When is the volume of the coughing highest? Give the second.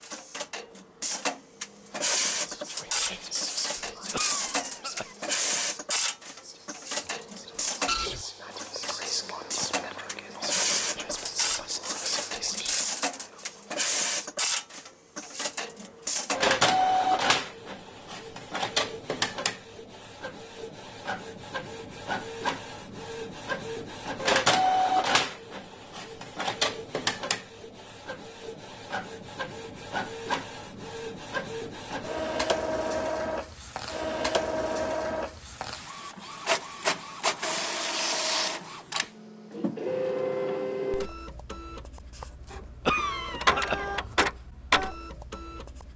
43 s.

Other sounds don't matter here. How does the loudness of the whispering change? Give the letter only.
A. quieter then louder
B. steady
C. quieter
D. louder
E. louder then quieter
A.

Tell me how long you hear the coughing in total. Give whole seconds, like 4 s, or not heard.
2 s.